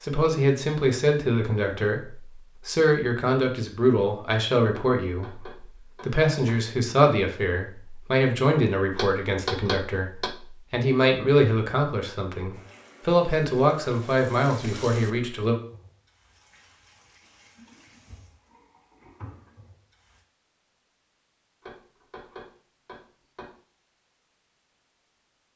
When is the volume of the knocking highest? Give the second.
10 s.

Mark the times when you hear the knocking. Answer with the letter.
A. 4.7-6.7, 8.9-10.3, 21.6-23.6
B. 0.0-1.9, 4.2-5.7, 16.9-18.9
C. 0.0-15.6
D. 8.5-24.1
A.